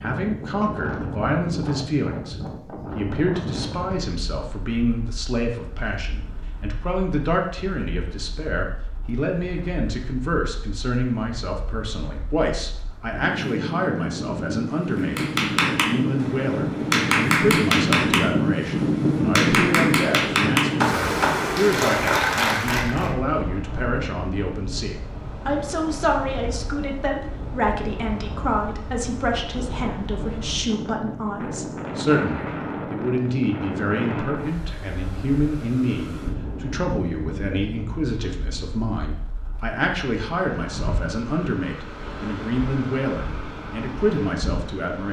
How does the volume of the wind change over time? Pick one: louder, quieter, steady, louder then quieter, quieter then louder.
louder then quieter.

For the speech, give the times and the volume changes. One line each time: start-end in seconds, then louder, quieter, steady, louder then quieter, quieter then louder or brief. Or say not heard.
0.0-45.0 steady.